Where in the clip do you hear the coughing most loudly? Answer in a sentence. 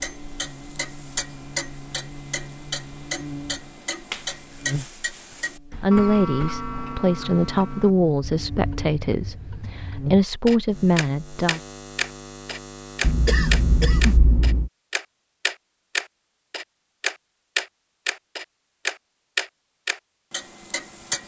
The loudest moment of the coughing is at 14 seconds.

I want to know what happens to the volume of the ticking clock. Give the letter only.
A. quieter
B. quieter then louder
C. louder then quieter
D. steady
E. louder
E.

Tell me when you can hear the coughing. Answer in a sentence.
You can hear the coughing from 5.7 to 6.7 s and from 13.0 to 14.7 s.